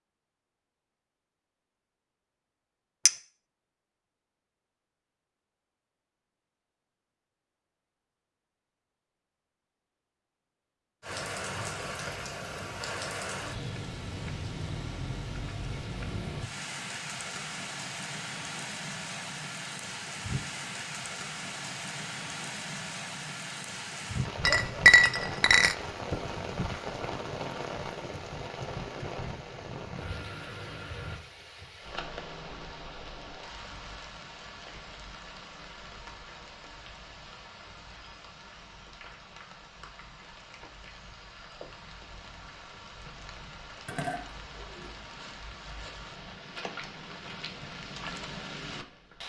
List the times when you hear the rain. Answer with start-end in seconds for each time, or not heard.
11.0-49.2.